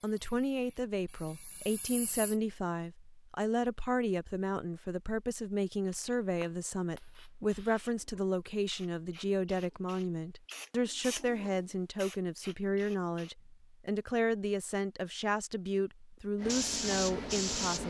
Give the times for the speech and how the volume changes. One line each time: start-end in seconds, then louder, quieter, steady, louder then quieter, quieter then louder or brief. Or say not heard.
0.0-17.8 steady.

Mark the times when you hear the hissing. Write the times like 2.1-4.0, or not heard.
0.0-2.4, 5.8-13.3, 16.4-17.8.